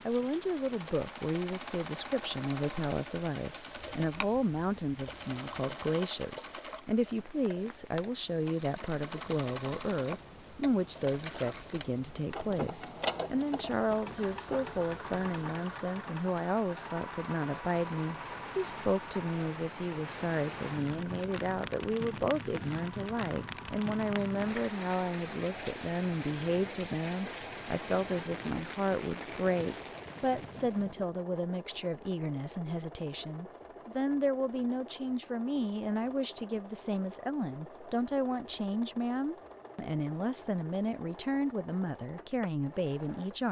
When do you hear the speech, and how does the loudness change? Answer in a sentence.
The speech can be heard from 0.1 to 43.4 s, at a steady volume.